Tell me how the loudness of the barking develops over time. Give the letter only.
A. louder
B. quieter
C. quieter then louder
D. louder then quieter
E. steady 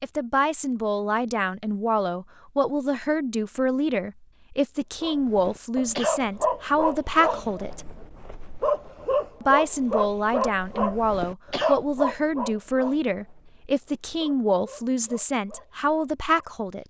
B.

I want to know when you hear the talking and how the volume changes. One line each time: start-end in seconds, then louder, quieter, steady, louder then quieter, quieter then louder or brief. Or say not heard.
0.0-7.8 steady
9.4-16.8 steady.